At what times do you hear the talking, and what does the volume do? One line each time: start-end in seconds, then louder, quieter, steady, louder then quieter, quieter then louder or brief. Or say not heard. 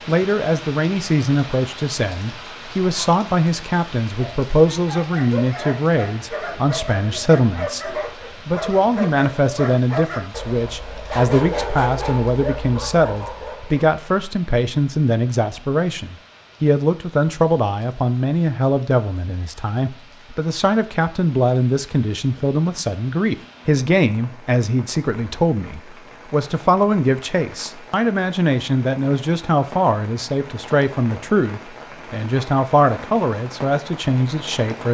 0.1-34.8 steady.